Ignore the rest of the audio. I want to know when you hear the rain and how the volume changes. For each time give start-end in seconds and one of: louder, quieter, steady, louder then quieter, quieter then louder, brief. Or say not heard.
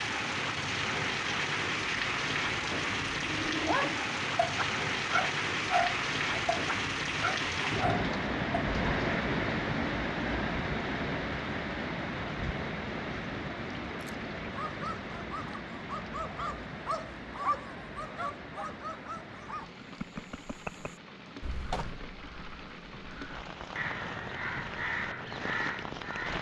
0.0-26.3 quieter.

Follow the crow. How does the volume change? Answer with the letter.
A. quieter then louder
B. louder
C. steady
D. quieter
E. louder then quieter
A.